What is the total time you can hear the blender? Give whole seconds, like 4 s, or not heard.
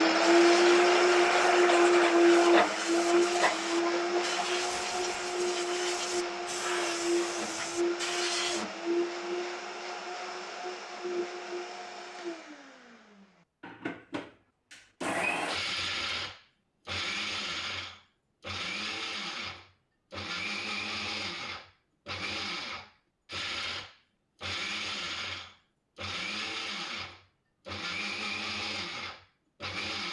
30 s.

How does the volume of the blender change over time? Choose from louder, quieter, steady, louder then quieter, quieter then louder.
quieter.